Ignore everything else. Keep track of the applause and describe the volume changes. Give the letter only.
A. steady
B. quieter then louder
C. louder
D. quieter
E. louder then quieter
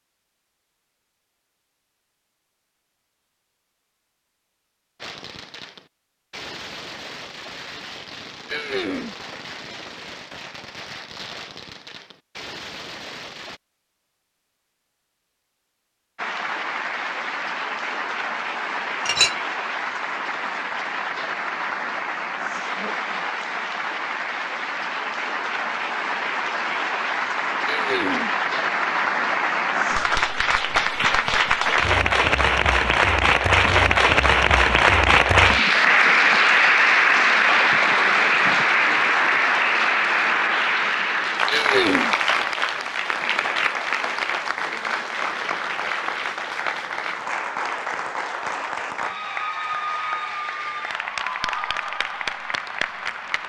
E.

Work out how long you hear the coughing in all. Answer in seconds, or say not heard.
2 s.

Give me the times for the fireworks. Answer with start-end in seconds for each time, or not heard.
5.0-13.6.